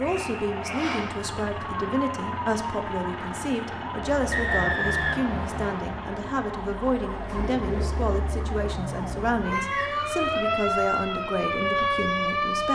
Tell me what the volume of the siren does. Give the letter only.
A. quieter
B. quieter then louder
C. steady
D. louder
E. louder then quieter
D.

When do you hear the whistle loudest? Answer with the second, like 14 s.
5 s.